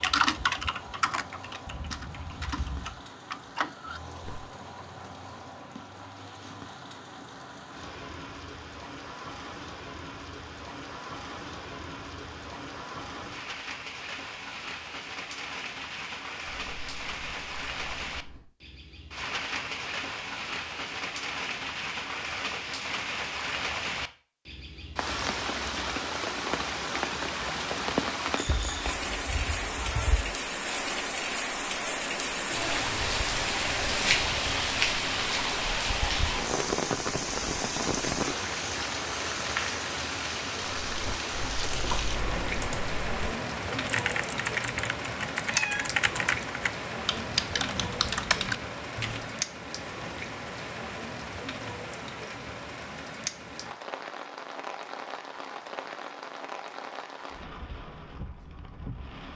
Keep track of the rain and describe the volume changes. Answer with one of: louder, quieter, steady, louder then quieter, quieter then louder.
louder then quieter.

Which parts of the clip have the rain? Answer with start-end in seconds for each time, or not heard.
0.0-59.3.